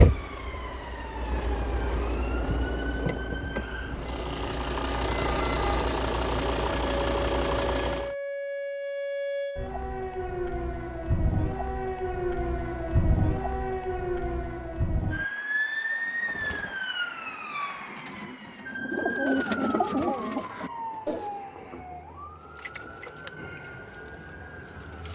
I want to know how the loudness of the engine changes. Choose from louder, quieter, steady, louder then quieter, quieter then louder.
louder.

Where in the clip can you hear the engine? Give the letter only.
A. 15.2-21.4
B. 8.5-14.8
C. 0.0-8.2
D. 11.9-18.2
C.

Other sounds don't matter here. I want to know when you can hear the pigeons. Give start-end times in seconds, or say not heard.
15.2-21.4.